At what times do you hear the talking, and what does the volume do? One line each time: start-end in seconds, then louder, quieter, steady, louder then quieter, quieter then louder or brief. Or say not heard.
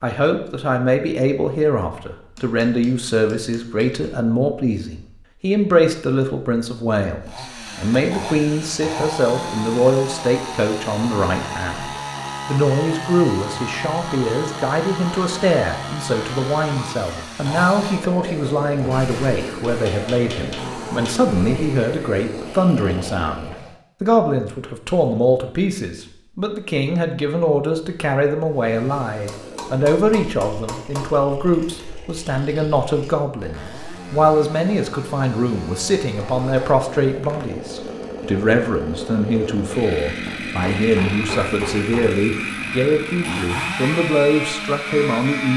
0.0-45.5 steady.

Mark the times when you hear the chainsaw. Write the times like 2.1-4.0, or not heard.
7.2-23.8, 28.4-45.5.